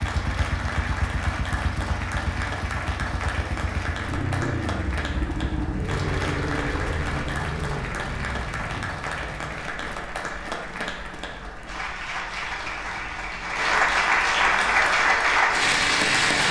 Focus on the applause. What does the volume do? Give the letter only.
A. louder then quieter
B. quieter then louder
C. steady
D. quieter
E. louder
E.